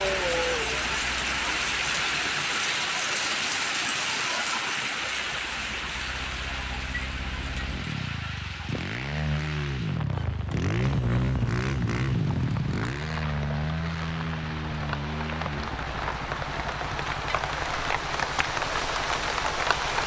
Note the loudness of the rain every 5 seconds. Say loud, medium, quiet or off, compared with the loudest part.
loud, medium, quiet, loud.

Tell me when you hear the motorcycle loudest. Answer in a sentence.
The loudest moment of the motorcycle is at 11 seconds.